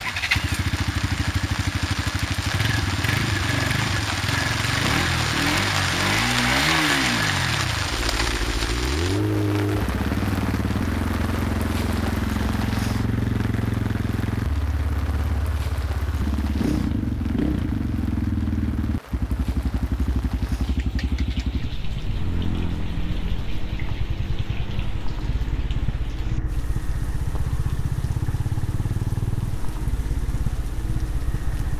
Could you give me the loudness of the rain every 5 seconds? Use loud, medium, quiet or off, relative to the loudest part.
loud, loud, medium, quiet, quiet, quiet, quiet.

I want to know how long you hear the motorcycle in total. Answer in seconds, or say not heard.
32 s.